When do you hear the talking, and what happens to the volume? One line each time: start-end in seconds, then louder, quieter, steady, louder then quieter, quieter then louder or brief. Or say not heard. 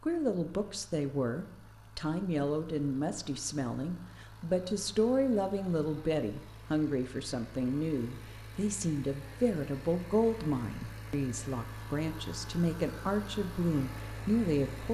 0.0-14.9 steady.